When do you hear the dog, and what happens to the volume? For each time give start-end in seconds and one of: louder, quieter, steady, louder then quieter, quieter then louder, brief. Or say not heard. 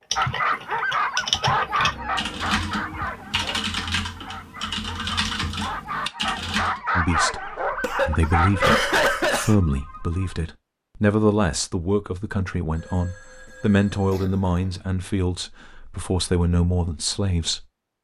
0.1-9.2 quieter then louder.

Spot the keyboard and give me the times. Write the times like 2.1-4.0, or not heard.
0.1-6.8.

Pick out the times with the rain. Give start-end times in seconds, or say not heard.
not heard.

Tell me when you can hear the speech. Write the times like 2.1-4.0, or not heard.
7.0-17.6.